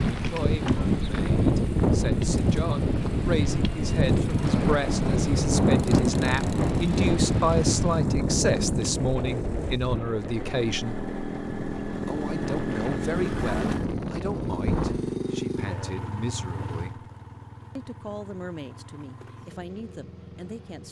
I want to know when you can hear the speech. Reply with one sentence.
You can hear the speech from 0.1 to 10.9 s, from 12.1 to 17.1 s and from 17.8 to 20.8 s.